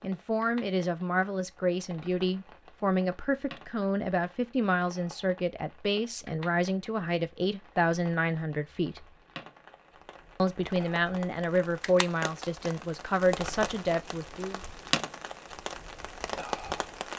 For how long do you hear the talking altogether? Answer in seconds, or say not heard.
13 s.